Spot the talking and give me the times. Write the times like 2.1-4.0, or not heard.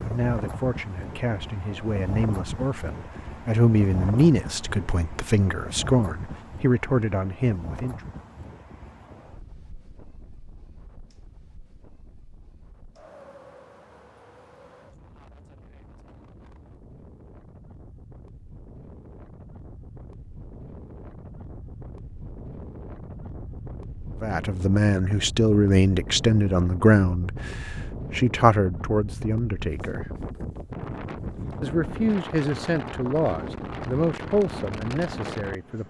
0.0-8.1, 24.2-30.1, 31.6-35.8.